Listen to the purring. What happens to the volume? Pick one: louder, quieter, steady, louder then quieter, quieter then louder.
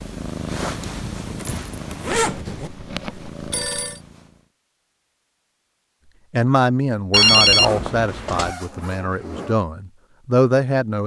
quieter then louder.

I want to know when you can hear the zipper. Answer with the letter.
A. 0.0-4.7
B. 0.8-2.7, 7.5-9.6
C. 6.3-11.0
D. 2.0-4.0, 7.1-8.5
B.